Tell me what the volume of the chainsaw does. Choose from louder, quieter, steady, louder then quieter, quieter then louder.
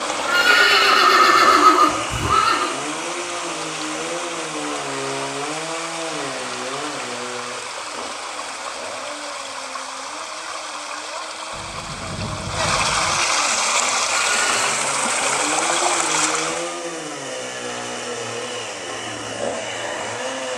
quieter then louder.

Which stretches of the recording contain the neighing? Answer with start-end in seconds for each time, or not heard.
0.2-2.7, 14.1-14.8.